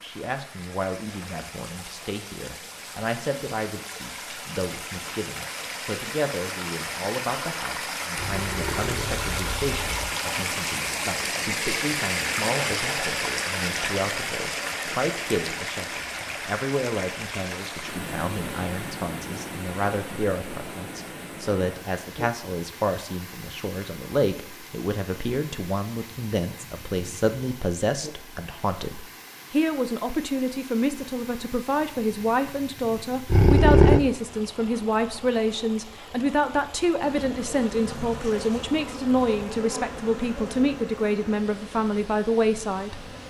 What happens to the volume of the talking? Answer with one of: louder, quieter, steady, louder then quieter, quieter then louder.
louder.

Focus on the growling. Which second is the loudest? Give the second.
34 s.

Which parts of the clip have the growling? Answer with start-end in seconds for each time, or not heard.
8.2-10.1, 33.3-34.0.